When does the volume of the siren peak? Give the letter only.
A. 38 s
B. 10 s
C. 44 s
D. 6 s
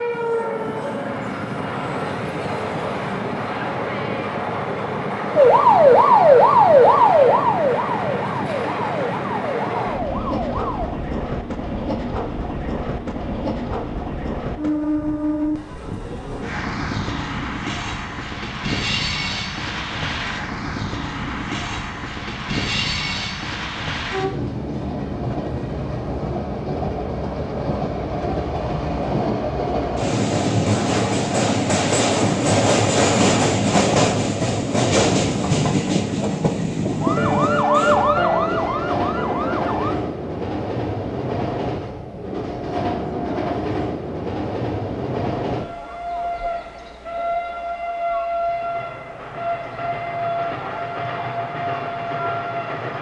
D.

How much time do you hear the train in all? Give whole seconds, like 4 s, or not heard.
53 s.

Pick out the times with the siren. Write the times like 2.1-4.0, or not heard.
5.3-10.9, 37.0-40.0.